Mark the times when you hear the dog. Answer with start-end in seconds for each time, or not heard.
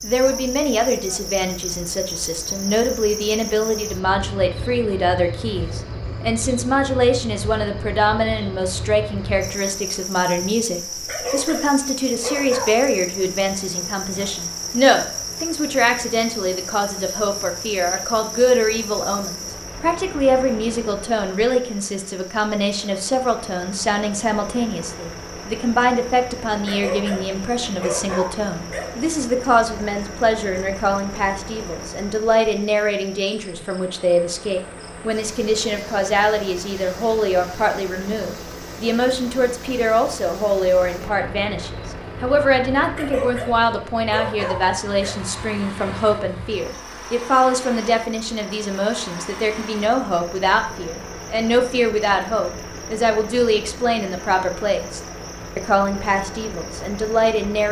10.9-12.8, 26.6-28.9, 42.9-45.1.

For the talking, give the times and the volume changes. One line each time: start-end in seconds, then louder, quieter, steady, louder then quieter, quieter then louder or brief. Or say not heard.
0.0-57.6 steady.